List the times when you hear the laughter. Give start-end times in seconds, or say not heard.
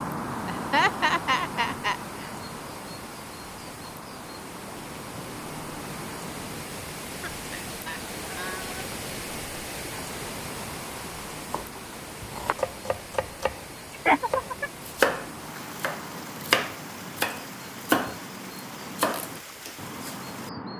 0.5-1.9, 7.2-8.9, 14.1-14.7.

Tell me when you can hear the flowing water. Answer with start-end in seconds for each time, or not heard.
0.0-20.7.